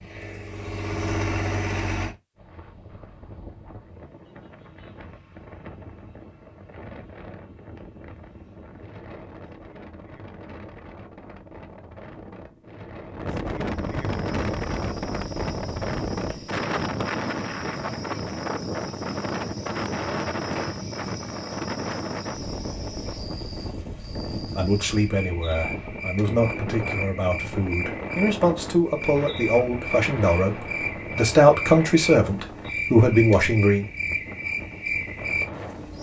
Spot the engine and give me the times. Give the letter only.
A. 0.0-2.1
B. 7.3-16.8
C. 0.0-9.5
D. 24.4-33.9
A.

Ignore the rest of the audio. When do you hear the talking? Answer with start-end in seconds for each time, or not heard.
24.4-33.9.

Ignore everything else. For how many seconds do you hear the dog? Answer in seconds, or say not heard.
not heard.